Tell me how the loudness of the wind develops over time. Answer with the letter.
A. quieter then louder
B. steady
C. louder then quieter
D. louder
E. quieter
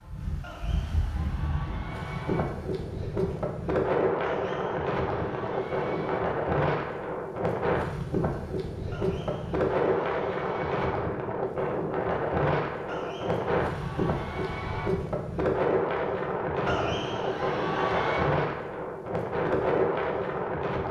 B.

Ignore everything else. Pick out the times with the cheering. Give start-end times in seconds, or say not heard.
0.4-2.5, 4.2-6.2, 8.9-10.9, 12.8-14.9, 16.6-18.3.